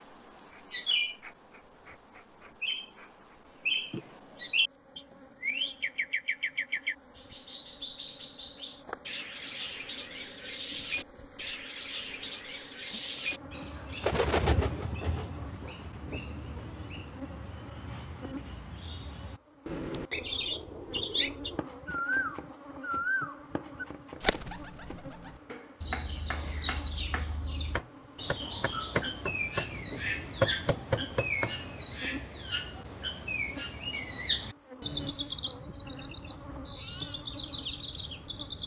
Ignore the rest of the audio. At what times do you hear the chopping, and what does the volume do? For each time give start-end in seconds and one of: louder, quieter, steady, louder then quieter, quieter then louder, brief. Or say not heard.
20.8-31.6 louder.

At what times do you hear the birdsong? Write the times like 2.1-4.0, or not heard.
0.0-38.6.